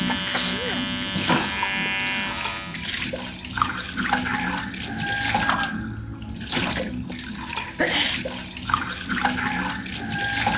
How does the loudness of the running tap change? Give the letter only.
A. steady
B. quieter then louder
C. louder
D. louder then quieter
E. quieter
A.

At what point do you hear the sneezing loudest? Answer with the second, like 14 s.
8 s.